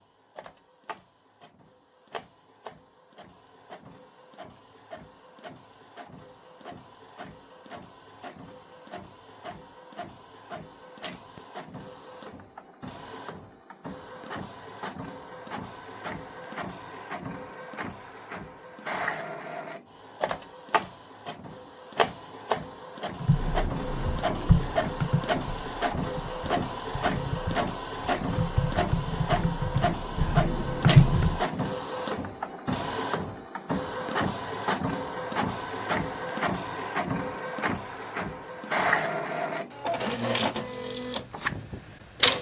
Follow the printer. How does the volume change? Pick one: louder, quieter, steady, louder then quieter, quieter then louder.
louder.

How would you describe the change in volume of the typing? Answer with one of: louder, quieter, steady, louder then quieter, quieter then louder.
quieter then louder.